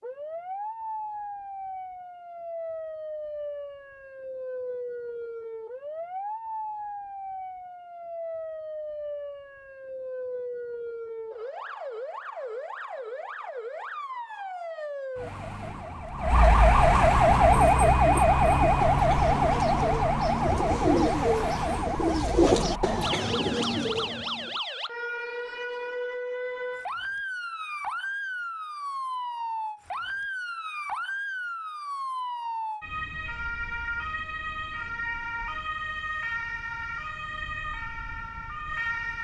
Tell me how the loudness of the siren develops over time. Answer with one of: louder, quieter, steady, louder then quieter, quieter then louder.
louder then quieter.